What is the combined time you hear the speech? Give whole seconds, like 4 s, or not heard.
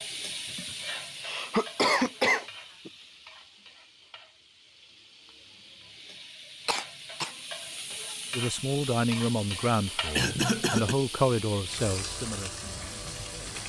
5 s.